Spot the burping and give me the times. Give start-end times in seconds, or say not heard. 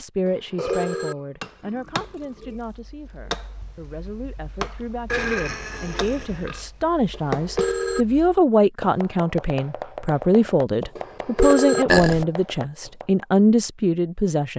0.6-2.6, 5.1-6.7, 11.8-12.2.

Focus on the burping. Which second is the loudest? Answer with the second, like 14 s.
12 s.